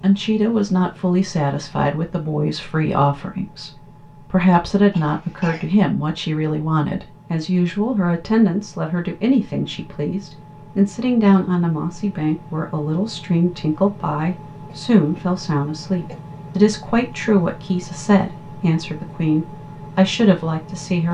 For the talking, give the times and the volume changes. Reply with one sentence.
The talking can be heard from 0.0 to 21.0 s, at a steady volume.